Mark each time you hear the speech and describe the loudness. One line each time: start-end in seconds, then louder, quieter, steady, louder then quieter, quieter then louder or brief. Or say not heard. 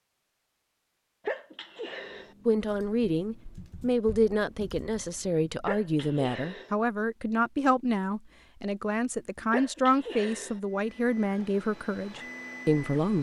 2.5-13.1 steady.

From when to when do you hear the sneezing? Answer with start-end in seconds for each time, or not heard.
1.2-2.4, 5.7-6.8, 9.5-10.6.